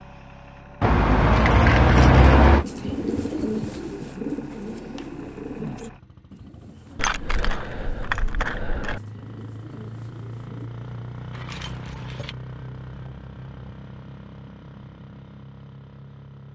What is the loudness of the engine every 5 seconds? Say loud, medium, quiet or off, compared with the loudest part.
medium, medium, loud, medium.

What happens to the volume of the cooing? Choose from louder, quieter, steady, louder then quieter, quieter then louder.
quieter.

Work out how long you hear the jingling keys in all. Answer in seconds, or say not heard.
5 s.